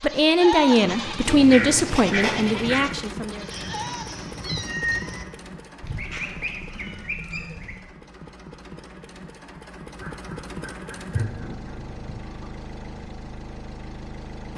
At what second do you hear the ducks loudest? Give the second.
2 s.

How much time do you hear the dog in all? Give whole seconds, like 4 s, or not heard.
not heard.